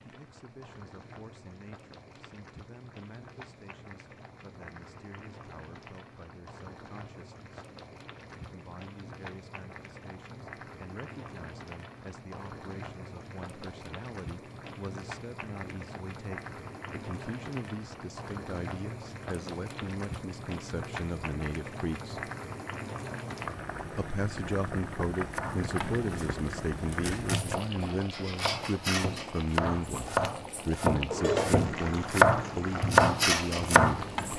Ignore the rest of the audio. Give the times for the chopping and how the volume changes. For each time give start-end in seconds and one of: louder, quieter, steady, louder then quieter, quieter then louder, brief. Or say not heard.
25.4-34.3 louder.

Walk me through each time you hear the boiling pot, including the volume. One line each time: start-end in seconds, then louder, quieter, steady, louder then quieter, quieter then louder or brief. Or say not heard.
0.0-34.3 louder.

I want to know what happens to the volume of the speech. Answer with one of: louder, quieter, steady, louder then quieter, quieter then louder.
louder.